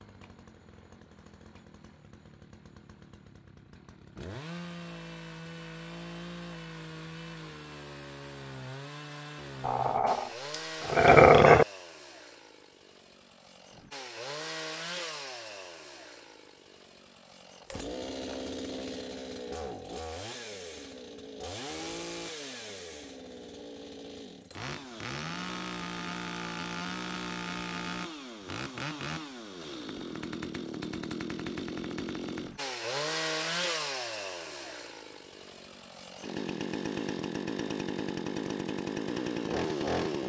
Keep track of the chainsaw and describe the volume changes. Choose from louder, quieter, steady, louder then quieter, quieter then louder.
louder.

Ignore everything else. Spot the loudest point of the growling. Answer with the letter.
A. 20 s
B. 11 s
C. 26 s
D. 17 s
B.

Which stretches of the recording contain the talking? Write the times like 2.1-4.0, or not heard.
not heard.